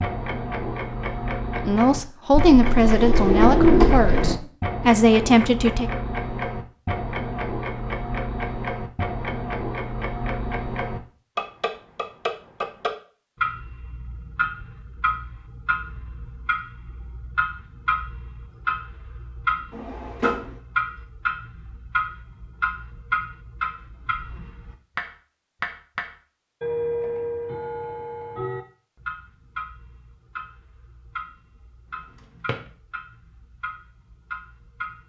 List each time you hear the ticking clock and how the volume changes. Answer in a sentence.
The ticking clock can be heard from 0.0 to 35.0 s, getting quieter.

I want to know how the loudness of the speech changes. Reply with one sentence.
The volume of the speech goes down, then up.